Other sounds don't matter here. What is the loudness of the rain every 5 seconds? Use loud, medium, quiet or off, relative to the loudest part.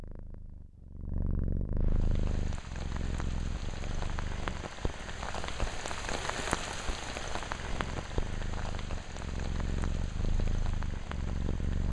medium, loud, medium.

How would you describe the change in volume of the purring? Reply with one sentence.
The volume of the purring goes down, then up.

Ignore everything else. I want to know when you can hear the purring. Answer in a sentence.
You can hear the purring from 0.0 to 11.8 s.